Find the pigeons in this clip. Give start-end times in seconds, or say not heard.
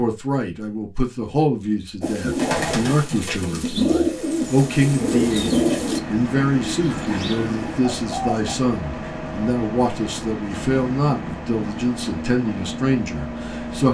2.0-8.6.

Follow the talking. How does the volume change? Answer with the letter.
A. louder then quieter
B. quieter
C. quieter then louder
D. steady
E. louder
D.